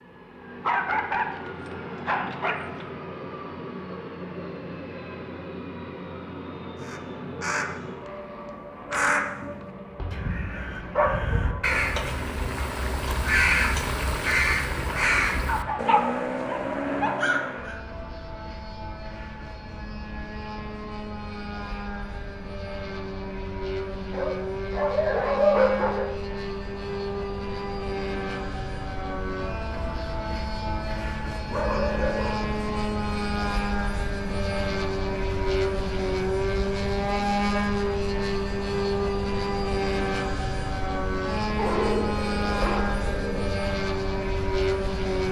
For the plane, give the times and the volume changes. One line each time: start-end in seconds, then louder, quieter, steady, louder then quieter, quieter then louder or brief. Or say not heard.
0.0-45.2 louder.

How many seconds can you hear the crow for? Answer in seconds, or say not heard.
10 s.